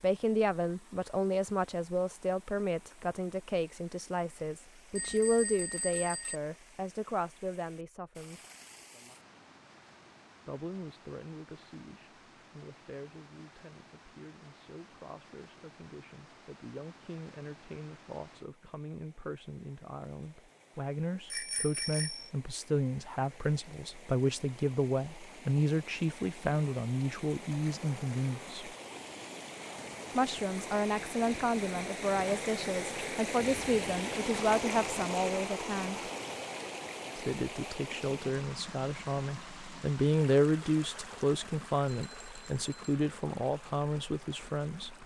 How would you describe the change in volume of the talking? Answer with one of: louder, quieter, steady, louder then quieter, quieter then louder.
quieter then louder.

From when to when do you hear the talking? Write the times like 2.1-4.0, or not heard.
0.0-8.4, 10.4-28.7, 30.1-36.1, 37.1-45.0.